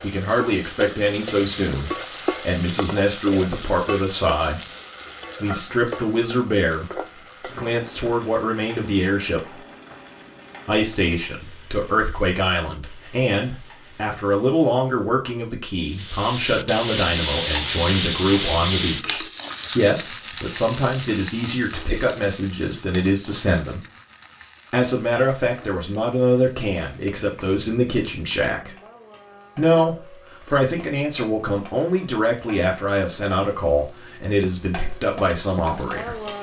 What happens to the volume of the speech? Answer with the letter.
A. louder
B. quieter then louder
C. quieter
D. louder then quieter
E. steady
E.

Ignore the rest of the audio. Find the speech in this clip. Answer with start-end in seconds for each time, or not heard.
0.0-4.7, 5.4-9.6, 10.7-23.9, 24.7-28.8, 29.6-36.3.